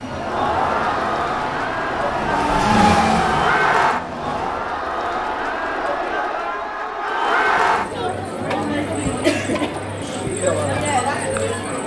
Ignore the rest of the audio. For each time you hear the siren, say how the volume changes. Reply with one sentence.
The siren can be heard from 0.0 to 4.8 s, getting louder then quieter.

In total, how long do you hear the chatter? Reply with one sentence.
The chatter can be heard for 12 seconds in total.